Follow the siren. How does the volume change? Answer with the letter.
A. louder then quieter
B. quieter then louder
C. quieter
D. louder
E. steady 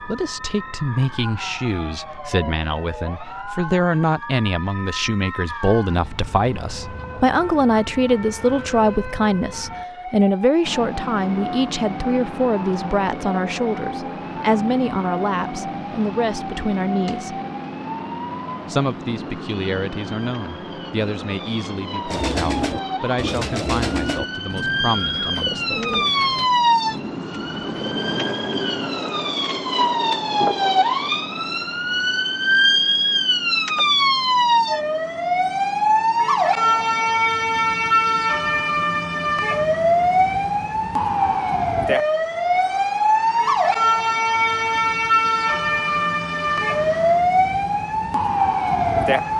D.